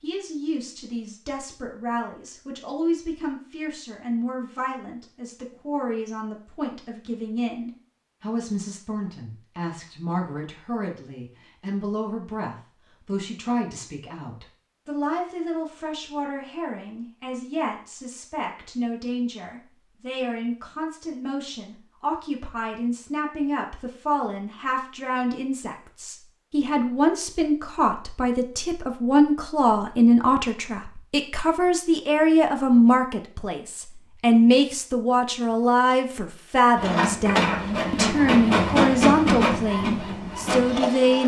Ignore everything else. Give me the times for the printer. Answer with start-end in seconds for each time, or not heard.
36.8-41.2.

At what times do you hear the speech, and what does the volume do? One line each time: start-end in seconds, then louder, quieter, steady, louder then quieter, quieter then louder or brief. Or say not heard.
0.0-41.2 louder.